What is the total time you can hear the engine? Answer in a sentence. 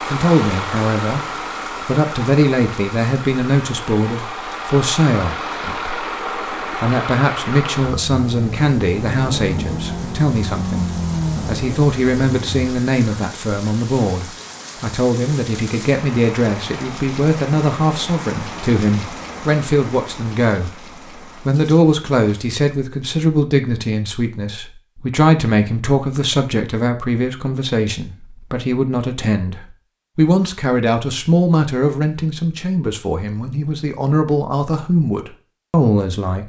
The engine can be heard for 13 seconds in total.